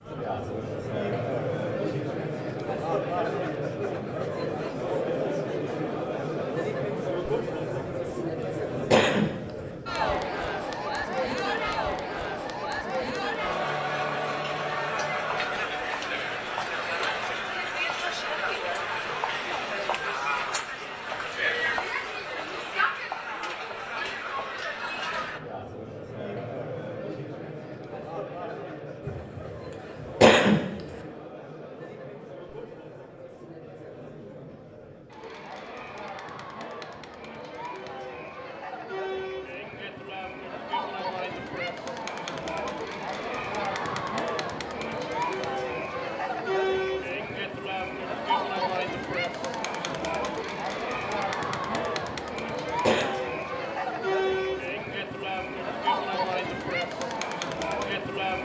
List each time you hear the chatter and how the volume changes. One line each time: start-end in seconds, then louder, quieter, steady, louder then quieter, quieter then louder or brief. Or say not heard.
0.0-58.4 quieter then louder.